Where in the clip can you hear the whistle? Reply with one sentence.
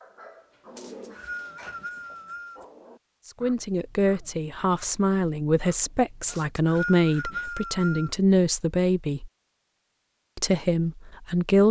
The whistle can be heard from 0.8 to 2.6 s and from 6.2 to 8.2 s.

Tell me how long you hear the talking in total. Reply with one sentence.
You can hear the talking for 7 seconds altogether.